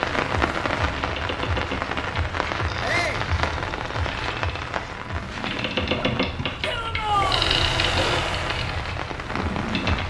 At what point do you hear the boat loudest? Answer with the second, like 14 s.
8 s.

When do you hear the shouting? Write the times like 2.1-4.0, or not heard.
2.8-3.2, 6.6-7.5.